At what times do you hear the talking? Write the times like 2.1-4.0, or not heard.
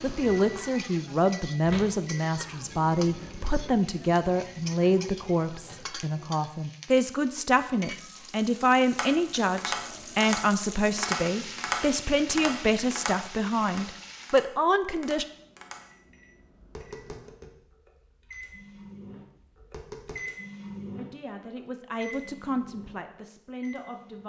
0.0-15.2, 20.9-24.2.